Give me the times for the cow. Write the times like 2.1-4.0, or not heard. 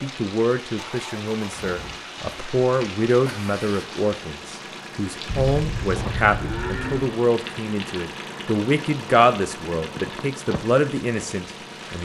5.2-7.1.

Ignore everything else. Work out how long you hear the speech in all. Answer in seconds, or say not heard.
12 s.